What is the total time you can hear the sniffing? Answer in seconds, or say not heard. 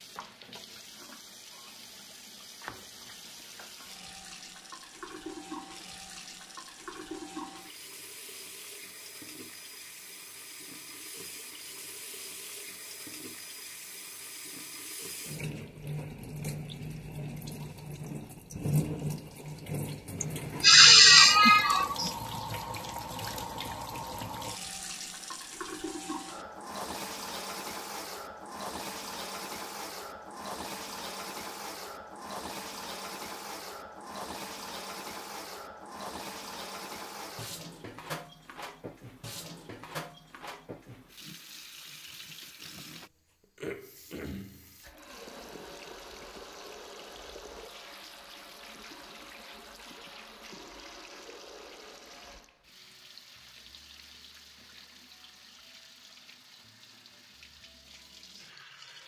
2 s.